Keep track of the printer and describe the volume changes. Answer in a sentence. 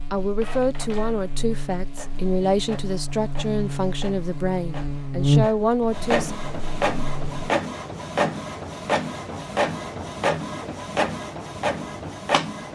The loudness of the printer goes up.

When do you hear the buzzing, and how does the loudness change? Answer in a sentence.
The buzzing can be heard from 0.0 to 7.5 s, getting louder then quieter.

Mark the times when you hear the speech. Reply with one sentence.
You can hear the speech from 0.1 to 6.3 s.